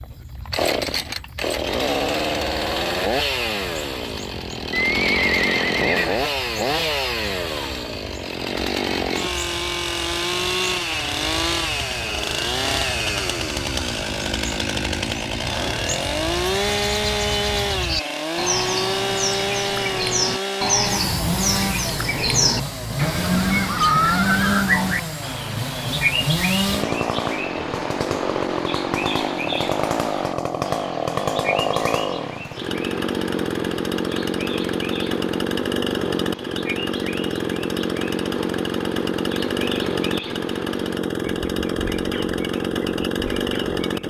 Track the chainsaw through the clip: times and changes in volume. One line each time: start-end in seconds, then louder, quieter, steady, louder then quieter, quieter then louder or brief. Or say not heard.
0.0-44.0 steady.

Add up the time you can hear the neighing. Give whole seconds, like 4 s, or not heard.
3 s.